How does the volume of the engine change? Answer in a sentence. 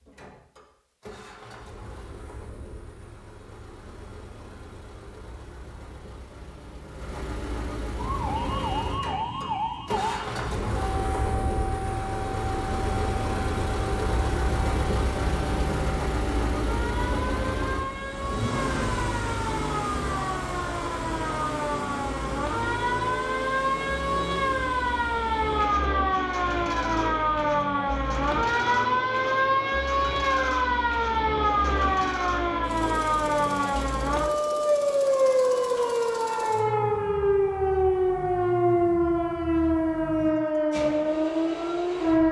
The loudness of the engine goes up, then down.